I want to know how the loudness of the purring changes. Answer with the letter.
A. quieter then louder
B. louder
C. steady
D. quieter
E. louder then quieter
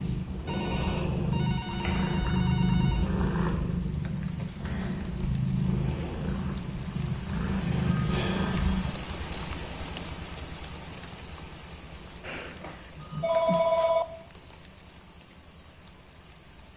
C.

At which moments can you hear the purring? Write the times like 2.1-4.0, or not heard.
0.0-8.9.